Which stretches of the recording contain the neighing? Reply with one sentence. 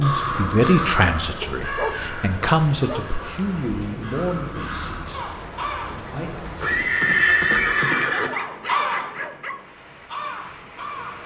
You can hear the neighing from 6.6 to 8.3 s.